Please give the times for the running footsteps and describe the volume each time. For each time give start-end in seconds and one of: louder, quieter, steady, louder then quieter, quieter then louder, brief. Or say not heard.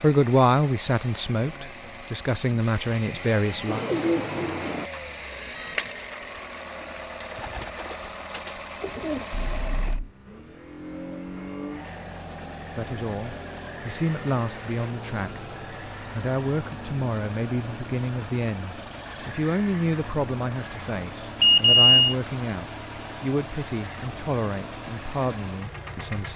not heard.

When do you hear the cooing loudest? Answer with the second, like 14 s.
4 s.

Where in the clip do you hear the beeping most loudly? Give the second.
22 s.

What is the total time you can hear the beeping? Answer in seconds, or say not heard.
2 s.